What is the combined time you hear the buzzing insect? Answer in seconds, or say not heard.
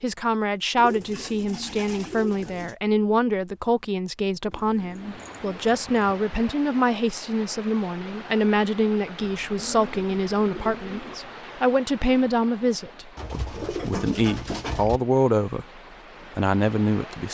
not heard.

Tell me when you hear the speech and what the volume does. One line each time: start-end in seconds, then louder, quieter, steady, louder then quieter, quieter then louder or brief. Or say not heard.
0.0-17.3 steady.